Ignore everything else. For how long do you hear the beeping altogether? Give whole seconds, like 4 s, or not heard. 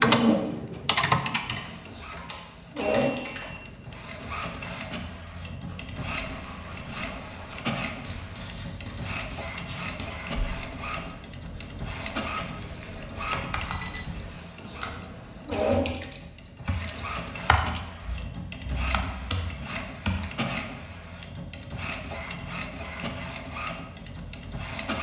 2 s.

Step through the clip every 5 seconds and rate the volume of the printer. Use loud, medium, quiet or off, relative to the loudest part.
loud, medium, medium, loud, medium.